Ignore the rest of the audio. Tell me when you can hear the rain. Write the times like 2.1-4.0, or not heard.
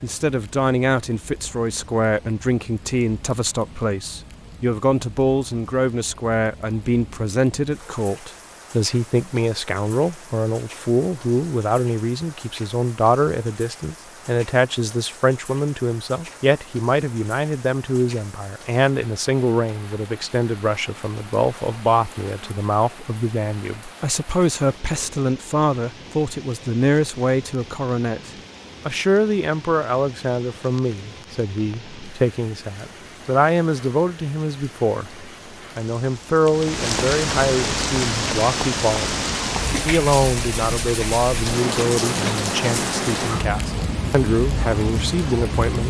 0.0-45.8.